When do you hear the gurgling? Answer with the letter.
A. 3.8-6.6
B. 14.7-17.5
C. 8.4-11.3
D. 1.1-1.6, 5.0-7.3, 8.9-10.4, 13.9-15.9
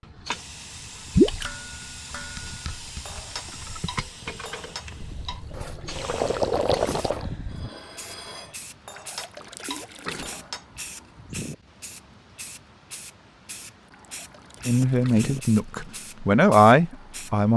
D.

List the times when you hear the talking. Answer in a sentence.
You can hear the talking from 14.7 to 17.5 s.